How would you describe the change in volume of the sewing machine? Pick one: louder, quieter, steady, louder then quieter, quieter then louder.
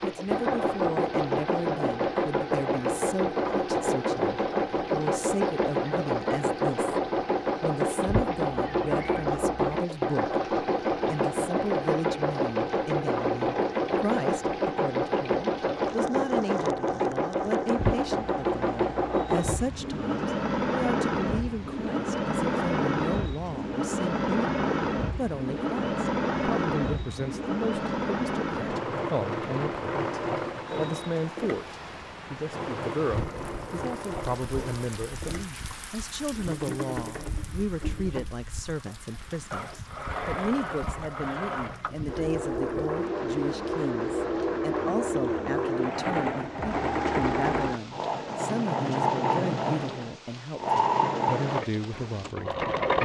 quieter then louder.